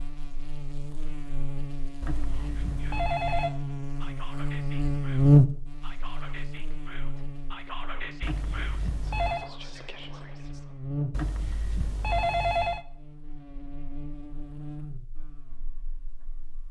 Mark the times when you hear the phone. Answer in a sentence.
The phone can be heard from 2.0 to 3.5 s, from 8.2 to 9.5 s and from 11.1 to 12.8 s.